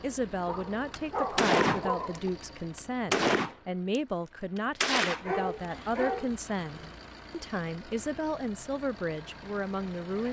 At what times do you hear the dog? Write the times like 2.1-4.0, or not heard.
0.5-2.3, 5.2-7.0.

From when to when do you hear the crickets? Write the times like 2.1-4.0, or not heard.
not heard.